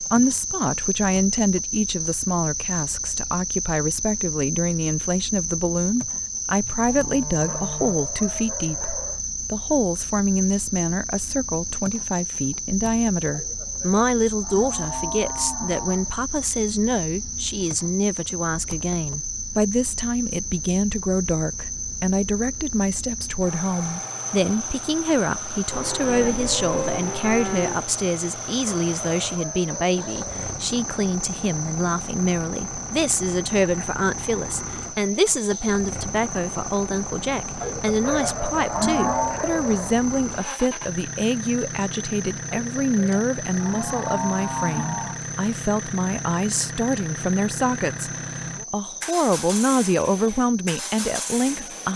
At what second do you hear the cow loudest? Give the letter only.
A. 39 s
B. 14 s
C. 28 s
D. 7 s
A.